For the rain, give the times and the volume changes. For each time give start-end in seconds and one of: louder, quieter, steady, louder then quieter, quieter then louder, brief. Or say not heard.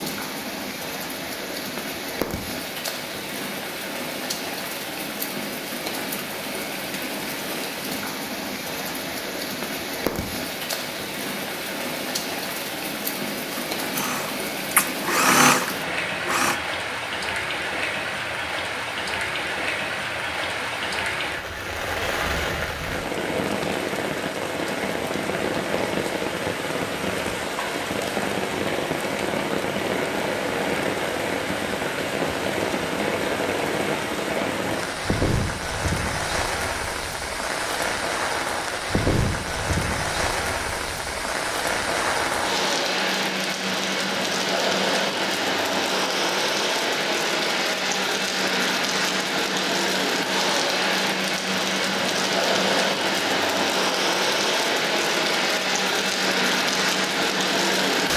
0.0-58.1 louder.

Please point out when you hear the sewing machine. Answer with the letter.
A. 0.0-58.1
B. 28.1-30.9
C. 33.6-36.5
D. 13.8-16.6
D.